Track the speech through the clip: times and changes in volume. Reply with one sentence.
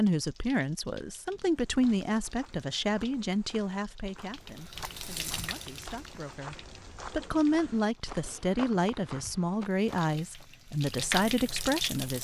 The speech can be heard from 0.0 to 12.2 s, getting quieter then louder.